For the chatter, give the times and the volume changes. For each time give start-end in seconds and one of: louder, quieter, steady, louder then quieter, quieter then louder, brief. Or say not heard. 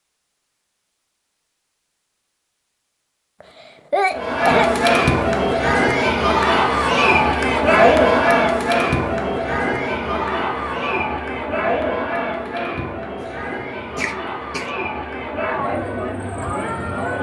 4.1-17.1 quieter.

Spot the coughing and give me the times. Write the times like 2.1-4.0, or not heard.
3.4-4.7, 13.9-14.7.